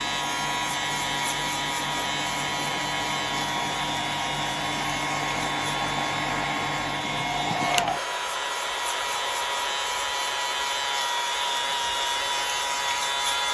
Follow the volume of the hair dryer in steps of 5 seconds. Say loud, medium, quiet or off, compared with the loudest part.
loud, loud, medium.